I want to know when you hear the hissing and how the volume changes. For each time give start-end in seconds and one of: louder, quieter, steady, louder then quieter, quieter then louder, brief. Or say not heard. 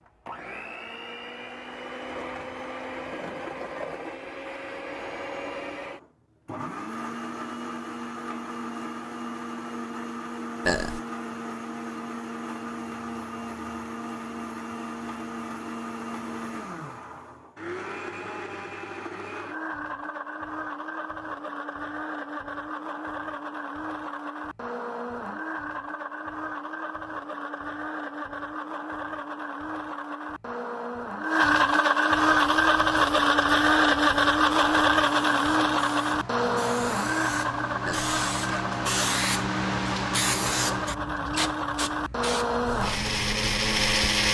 32.5-44.2 louder then quieter.